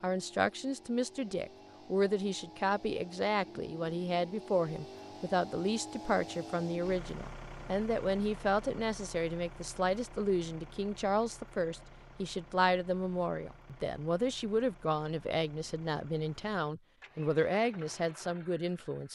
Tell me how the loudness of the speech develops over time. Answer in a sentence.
The loudness of the speech stays about the same.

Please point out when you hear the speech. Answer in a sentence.
You can hear the speech from 0.0 to 19.1 s.